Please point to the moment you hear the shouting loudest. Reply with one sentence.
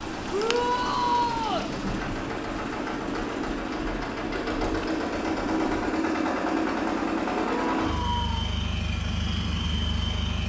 The loudest moment of the shouting is at 1 second.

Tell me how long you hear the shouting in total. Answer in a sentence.
The shouting can be heard for 2 seconds in total.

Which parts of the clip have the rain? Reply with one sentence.
You can hear the rain from 0.0 to 6.0 s.